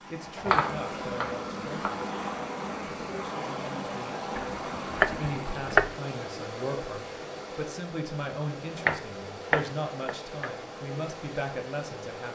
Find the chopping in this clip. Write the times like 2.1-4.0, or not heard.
0.2-2.0, 4.3-6.0, 8.8-10.5.